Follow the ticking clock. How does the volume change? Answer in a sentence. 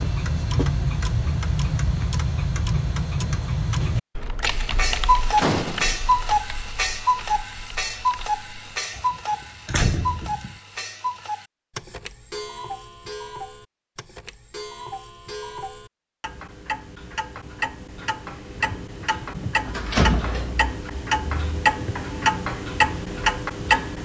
The volume of the ticking clock goes down, then up.